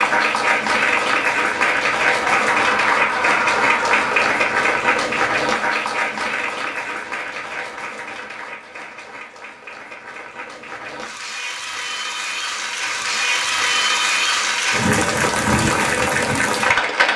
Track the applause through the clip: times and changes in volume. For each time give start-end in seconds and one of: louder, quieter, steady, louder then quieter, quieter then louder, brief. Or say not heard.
0.0-17.1 quieter then louder.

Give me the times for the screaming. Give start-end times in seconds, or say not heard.
2.5-4.2.